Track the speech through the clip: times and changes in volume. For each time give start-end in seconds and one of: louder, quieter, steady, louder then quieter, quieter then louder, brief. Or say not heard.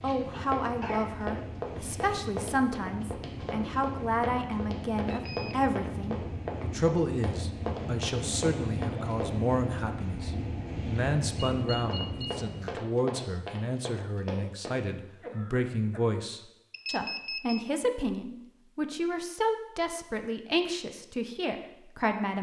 0.0-22.3 steady.